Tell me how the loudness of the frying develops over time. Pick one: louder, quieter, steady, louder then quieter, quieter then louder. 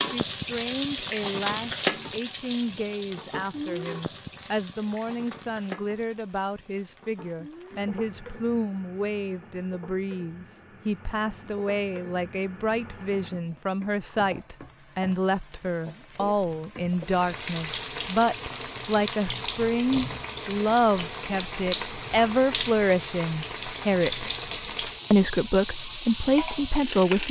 quieter then louder.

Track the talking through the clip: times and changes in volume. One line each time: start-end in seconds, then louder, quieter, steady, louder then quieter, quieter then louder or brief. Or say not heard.
0.0-24.3 louder
25.1-27.2 brief.